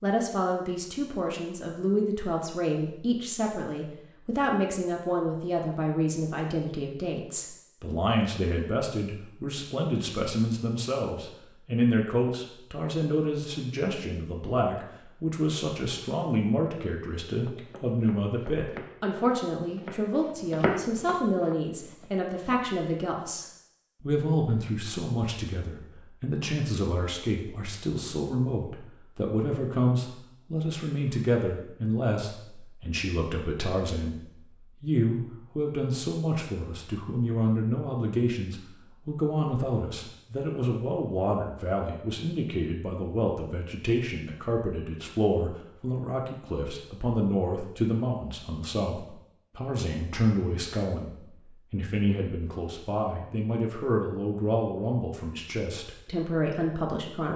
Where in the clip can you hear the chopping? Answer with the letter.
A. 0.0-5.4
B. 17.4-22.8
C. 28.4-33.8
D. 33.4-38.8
B.